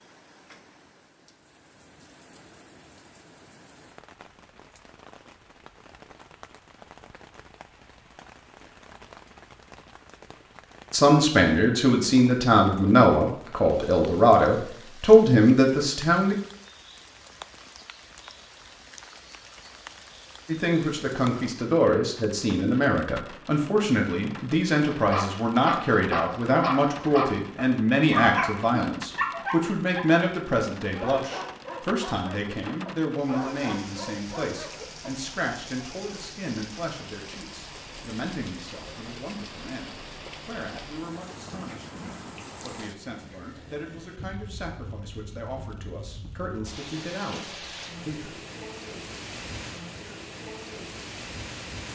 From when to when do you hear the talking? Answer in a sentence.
The talking can be heard from 10.9 to 16.4 s and from 20.4 to 48.3 s.